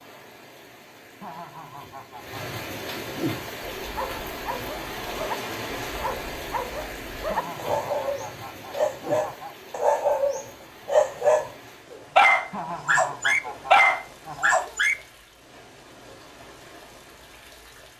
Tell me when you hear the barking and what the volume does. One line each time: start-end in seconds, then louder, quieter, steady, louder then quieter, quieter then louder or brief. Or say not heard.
3.8-14.9 louder.